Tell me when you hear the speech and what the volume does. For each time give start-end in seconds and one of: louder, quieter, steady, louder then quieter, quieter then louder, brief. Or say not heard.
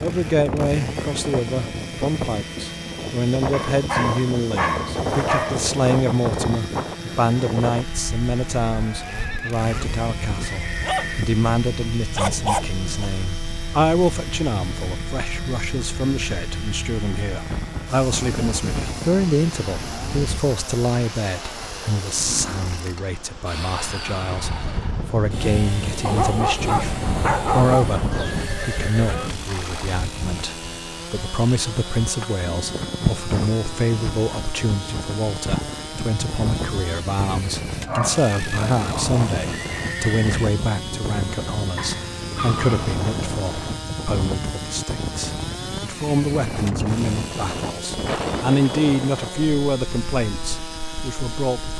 0.0-51.7 steady.